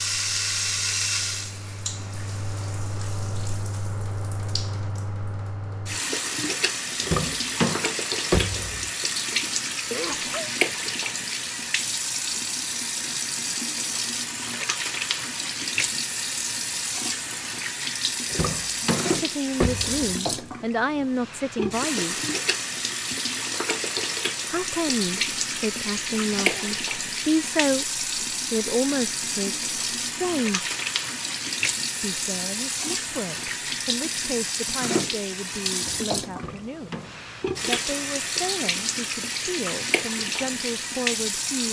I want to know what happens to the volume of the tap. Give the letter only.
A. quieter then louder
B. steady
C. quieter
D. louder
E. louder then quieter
B.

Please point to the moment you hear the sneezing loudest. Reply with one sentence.
The volume of the sneezing peaks at 10 seconds.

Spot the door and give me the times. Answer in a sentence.
You can hear the door from 7.0 to 8.9 s, from 18.3 to 20.1 s and from 36.3 to 37.2 s.